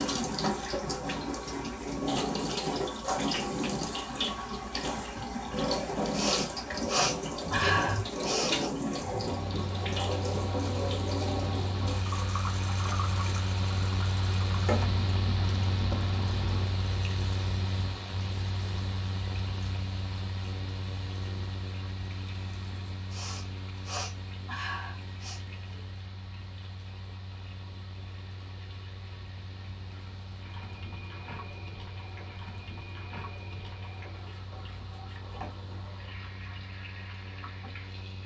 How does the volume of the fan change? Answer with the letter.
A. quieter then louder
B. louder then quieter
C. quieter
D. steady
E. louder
C.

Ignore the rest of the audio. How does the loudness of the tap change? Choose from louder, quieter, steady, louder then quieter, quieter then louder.
quieter then louder.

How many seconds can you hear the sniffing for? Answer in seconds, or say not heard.
5 s.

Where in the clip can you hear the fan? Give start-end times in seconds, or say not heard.
9.2-38.2.